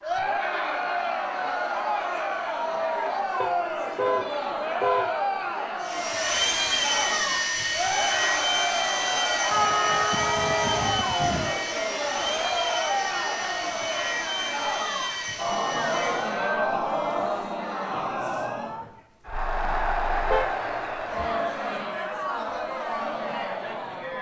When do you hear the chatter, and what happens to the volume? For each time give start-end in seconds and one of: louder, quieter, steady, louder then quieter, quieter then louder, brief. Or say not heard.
0.0-24.1 steady.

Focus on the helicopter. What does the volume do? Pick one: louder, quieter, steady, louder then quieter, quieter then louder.
quieter.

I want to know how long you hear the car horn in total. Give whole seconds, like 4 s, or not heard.
5 s.